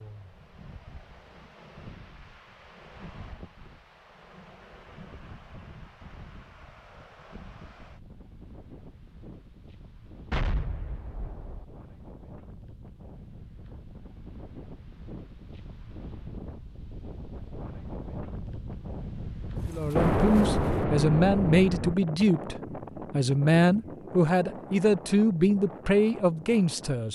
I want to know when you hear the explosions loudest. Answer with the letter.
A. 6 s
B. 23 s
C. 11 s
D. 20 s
D.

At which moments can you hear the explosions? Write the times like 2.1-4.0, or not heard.
10.3-11.7, 19.9-21.9.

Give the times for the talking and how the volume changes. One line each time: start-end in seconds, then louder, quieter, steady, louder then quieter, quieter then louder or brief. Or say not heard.
19.6-27.0 steady.